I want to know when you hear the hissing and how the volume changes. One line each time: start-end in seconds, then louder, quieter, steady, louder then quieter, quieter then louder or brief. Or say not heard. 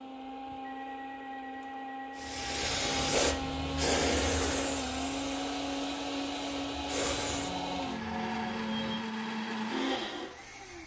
2.1-7.5 quieter then louder.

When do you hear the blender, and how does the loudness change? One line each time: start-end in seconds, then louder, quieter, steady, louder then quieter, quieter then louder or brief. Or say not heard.
0.0-10.8 louder.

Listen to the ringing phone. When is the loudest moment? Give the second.
8 s.